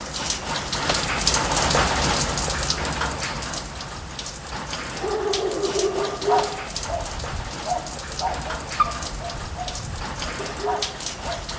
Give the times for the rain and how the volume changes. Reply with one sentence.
You can hear the rain from 0.0 to 11.5 s, getting quieter.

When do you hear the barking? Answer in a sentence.
You can hear the barking from 5.0 to 11.5 s.